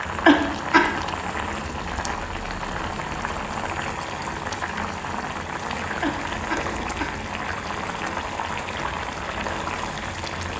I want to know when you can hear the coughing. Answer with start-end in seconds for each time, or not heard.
0.2-0.8, 6.0-7.1.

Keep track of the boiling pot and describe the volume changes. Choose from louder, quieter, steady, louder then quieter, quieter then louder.
steady.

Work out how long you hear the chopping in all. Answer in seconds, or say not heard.
not heard.